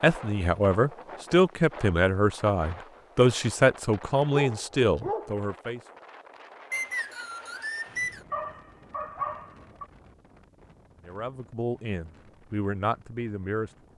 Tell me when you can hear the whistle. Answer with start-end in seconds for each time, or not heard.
6.7-8.2.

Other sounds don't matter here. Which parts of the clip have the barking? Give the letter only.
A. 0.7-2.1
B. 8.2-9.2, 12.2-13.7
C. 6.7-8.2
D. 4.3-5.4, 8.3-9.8
D.